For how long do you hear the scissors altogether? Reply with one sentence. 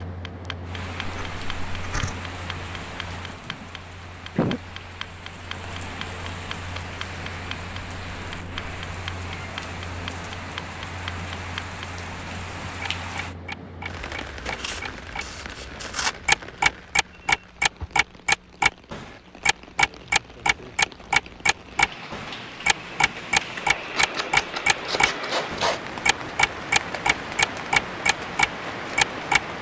The scissors can be heard for 5 seconds in total.